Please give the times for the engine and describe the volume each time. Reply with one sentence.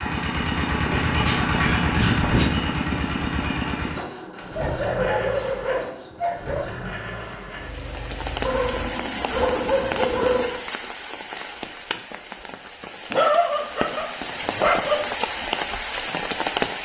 The engine can be heard from 0.0 to 8.9 s, getting quieter.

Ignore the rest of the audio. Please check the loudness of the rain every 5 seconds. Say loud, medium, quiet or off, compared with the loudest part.
off, medium, medium, loud.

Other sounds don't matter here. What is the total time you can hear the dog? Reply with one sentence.
You can hear the dog for 8 seconds altogether.